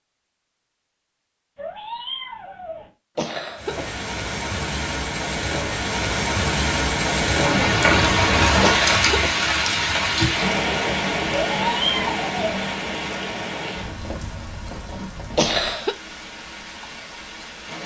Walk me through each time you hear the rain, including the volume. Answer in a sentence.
The rain can be heard from 3.5 to 17.8 s, getting louder then quieter.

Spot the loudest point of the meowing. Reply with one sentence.
The loudest moment of the meowing is at 12 seconds.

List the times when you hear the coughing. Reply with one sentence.
You can hear the coughing from 3.1 to 4.0 s, from 8.6 to 9.5 s and from 15.3 to 15.9 s.